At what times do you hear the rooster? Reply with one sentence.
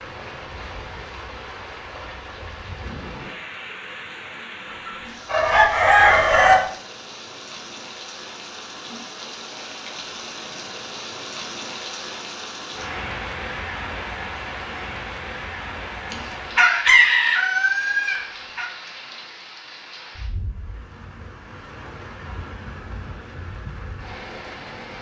The rooster can be heard from 5.2 to 6.6 s and from 16.1 to 18.6 s.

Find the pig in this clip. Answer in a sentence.
The pig can't be heard in this clip.